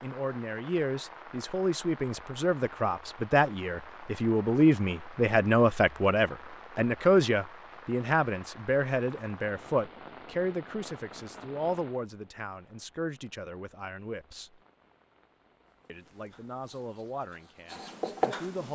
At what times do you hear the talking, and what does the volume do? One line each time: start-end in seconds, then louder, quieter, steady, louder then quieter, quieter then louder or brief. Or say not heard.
0.0-14.6 louder then quieter
15.8-18.7 brief.